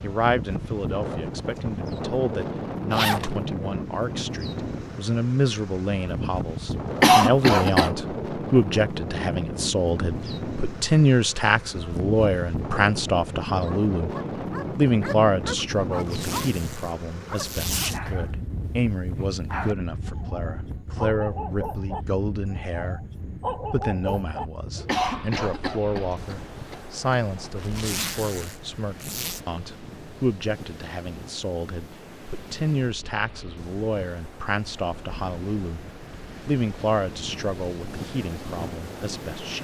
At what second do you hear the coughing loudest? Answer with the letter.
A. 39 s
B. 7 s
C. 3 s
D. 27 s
B.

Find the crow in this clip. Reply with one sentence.
You can't hear the crow here.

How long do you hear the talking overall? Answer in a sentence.
You can hear the talking for 38 seconds altogether.